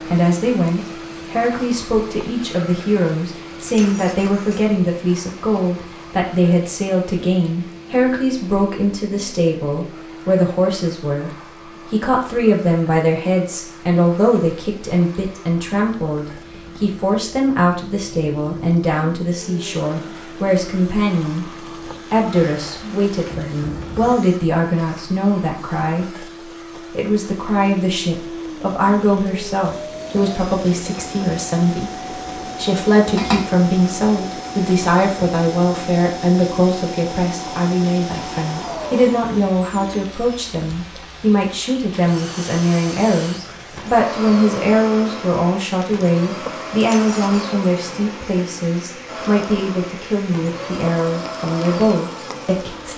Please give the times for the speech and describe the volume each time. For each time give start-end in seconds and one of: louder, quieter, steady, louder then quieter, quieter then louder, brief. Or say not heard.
0.0-21.4 steady
22.1-52.9 steady.